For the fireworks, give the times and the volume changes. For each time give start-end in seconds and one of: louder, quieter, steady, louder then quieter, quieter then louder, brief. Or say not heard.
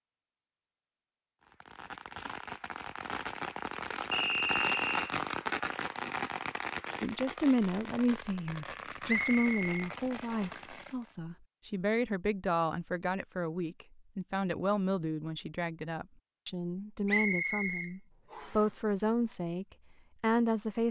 1.4-11.2 louder then quieter.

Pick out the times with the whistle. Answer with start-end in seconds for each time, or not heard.
4.1-5.2, 9.1-10.6, 17.1-18.6.